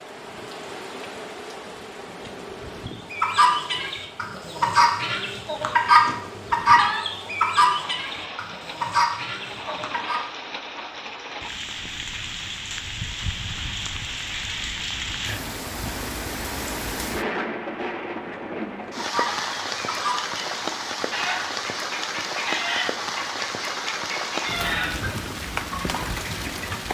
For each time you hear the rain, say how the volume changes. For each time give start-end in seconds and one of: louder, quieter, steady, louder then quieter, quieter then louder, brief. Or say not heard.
0.0-26.8 louder.